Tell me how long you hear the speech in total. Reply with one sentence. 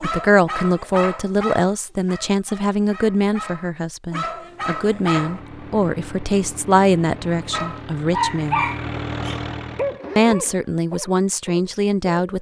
The speech can be heard for 11 seconds in total.